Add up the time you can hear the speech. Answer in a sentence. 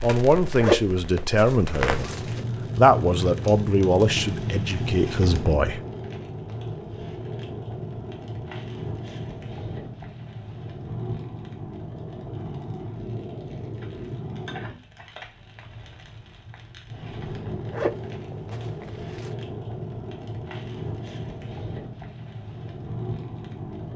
The speech can be heard for 6 seconds in total.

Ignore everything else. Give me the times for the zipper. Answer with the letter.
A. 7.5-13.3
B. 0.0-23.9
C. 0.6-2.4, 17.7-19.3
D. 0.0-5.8
C.